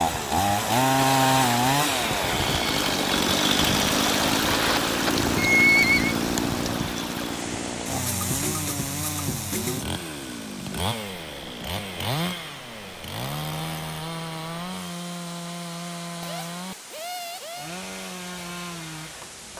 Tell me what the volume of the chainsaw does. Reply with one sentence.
The volume of the chainsaw goes down.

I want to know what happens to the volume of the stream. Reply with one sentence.
The loudness of the stream goes down.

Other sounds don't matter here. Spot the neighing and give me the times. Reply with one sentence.
The neighing can be heard from 5.3 to 6.2 s.